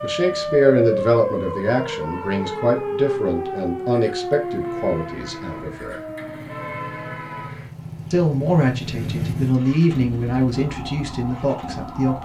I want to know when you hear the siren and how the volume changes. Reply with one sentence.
The siren can be heard from 0.0 to 7.5 s, getting quieter; and briefly from 10.5 to 12.2 s.